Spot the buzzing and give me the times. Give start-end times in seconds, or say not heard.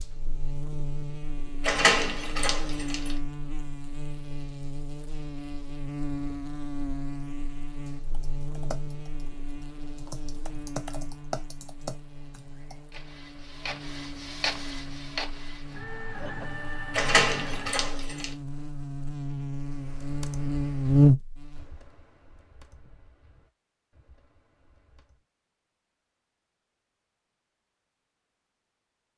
0.0-21.8.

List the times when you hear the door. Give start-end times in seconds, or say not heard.
1.6-3.1, 16.9-18.3.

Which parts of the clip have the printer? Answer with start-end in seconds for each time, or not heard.
12.9-17.9.